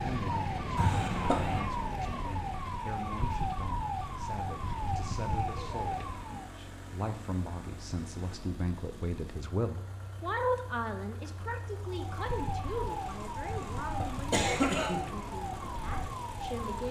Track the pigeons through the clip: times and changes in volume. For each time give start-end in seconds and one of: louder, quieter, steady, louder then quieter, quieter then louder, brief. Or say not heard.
not heard.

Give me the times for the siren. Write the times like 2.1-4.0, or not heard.
0.0-6.5, 11.8-16.8.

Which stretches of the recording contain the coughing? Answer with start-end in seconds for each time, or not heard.
0.8-1.6, 13.4-15.1.